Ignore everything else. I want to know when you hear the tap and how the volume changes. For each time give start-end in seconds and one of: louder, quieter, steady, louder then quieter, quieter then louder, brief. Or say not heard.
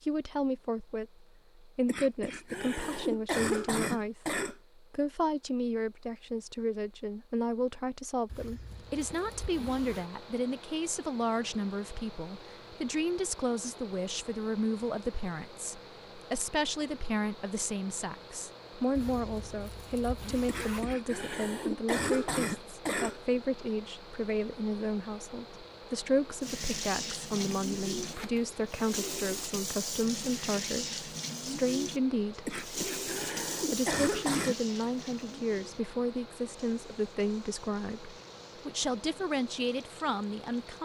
26.4-40.7 quieter.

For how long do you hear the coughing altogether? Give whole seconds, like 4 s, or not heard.
8 s.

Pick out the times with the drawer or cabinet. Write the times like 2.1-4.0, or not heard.
not heard.